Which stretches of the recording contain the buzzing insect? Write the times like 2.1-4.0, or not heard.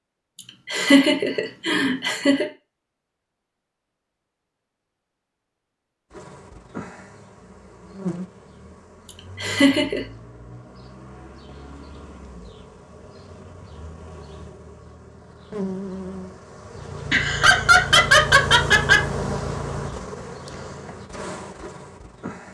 6.1-22.5.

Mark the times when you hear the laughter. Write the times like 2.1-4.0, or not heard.
0.7-2.5, 9.4-10.0, 17.1-19.0.